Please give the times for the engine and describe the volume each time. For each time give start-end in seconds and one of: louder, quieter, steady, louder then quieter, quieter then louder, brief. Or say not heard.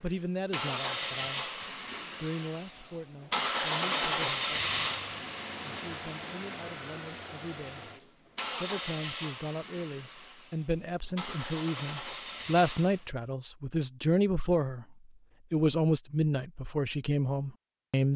0.0-13.1 louder then quieter.